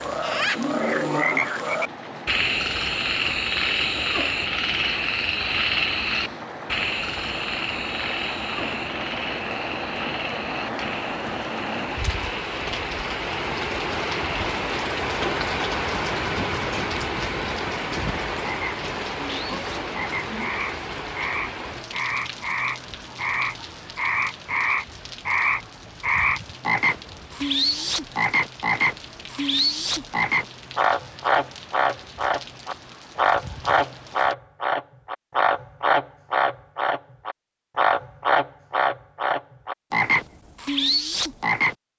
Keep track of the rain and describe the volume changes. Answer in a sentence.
The loudness of the rain goes up, then down.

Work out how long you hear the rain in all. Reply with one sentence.
You can hear the rain for 34 seconds altogether.